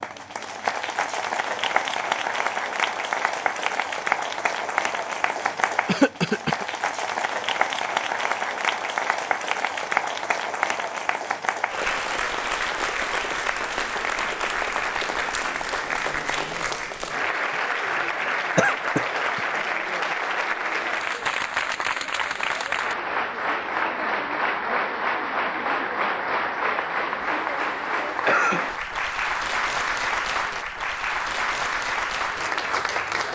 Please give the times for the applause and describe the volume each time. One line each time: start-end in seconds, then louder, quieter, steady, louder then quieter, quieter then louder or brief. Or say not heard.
0.0-33.3 steady.